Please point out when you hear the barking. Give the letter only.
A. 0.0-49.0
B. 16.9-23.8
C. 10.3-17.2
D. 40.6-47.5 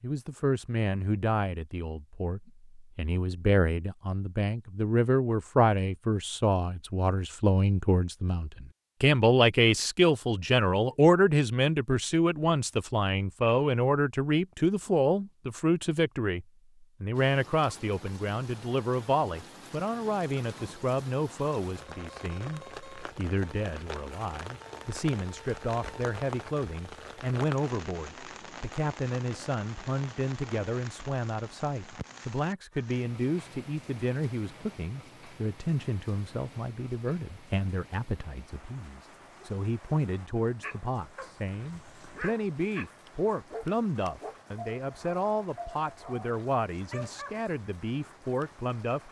D.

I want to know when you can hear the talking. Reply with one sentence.
The talking can be heard from 0.0 to 49.0 s.